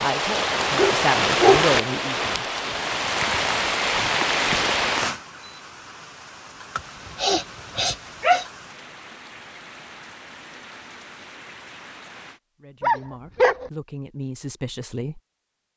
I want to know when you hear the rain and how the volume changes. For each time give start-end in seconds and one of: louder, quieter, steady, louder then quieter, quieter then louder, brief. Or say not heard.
0.0-12.4 quieter.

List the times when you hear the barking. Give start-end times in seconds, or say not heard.
0.6-1.8, 6.8-8.4, 12.8-13.7.